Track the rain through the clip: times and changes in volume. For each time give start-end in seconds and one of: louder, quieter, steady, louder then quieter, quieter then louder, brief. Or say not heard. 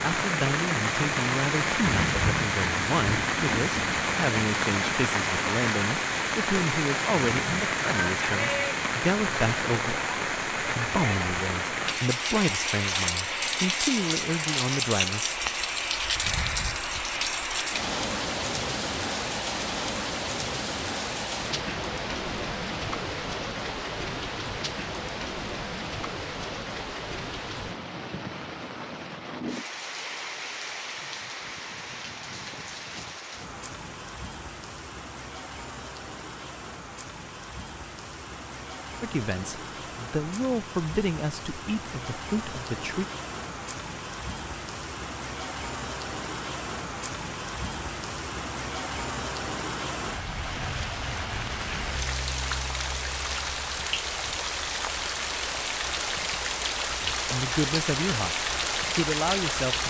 0.0-59.8 quieter then louder.